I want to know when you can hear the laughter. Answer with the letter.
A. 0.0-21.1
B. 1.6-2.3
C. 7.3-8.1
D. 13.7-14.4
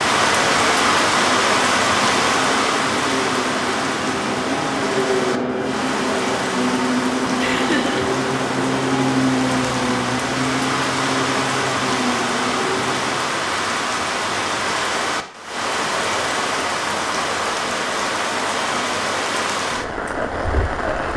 C.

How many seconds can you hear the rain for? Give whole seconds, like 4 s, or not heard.
21 s.